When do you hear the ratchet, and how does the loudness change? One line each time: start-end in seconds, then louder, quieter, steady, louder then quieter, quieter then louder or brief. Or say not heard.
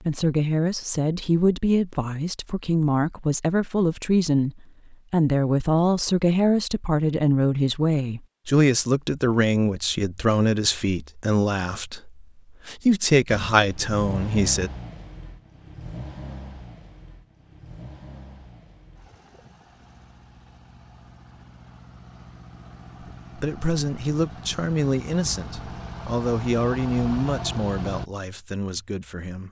not heard.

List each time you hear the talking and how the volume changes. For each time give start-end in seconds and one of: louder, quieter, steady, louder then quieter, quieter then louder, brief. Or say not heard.
0.1-14.7 steady
23.4-29.4 quieter.